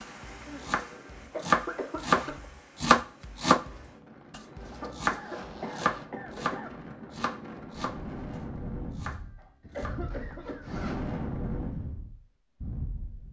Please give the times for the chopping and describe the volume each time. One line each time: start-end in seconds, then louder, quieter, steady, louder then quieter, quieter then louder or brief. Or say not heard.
0.0-9.9 quieter.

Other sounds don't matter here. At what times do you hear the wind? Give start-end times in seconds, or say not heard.
0.0-13.2.